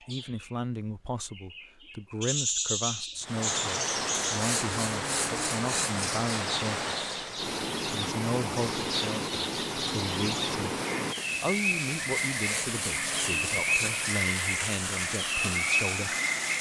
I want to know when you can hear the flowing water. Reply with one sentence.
The flowing water can be heard from 3.2 to 16.5 s.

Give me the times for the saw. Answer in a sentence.
The saw can be heard from 4.3 to 6.3 s and from 12.3 to 14.2 s.